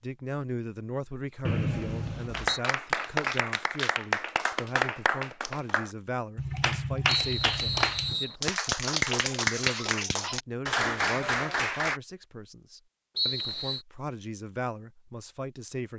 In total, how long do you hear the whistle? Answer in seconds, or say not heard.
3 s.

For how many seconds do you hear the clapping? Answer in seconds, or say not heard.
10 s.